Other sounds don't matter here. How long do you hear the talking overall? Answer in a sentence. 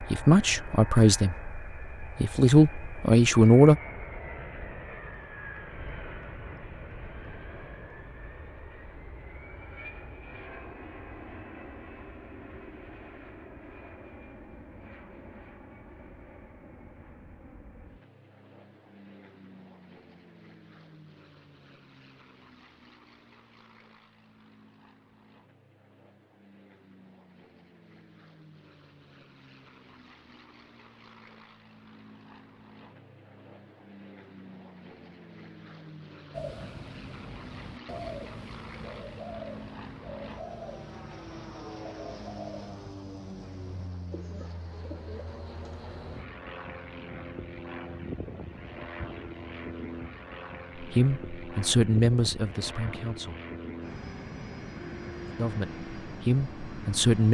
The talking can be heard for 8 seconds in total.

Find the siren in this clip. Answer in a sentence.
The siren can't be heard in this clip.